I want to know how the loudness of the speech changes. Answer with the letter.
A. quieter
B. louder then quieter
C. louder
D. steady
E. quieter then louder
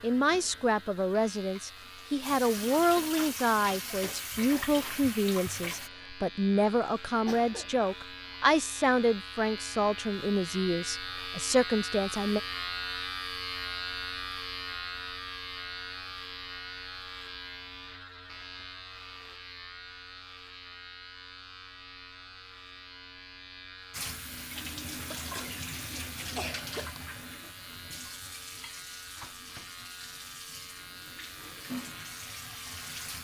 D.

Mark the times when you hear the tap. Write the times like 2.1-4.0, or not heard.
0.0-5.9, 23.9-33.1.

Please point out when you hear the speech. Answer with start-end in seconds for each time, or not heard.
0.0-12.4.